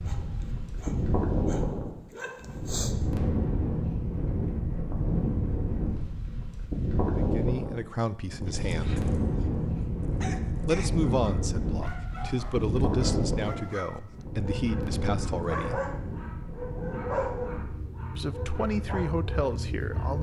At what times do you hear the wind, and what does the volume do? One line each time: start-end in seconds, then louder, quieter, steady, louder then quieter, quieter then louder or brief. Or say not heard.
0.0-20.1 quieter.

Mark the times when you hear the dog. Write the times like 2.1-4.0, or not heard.
0.0-3.0, 8.4-20.1.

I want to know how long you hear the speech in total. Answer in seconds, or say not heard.
9 s.